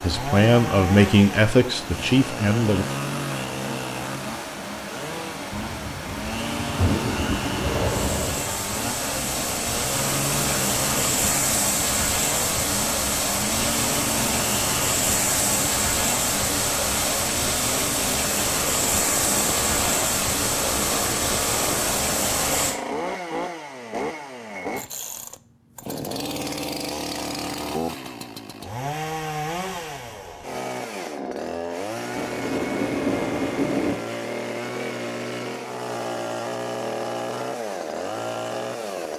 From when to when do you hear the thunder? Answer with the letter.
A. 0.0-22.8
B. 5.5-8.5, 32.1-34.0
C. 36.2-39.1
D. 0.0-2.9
B.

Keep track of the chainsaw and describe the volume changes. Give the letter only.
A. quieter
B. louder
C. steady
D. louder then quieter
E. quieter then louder
C.